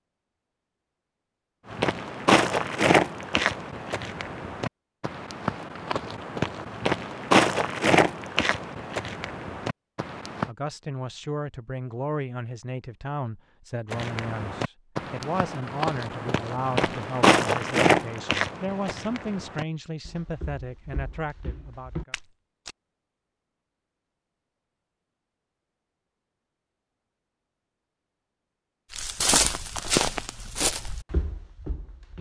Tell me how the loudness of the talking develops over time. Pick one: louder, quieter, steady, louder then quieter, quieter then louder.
steady.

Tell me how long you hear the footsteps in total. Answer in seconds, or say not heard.
21 s.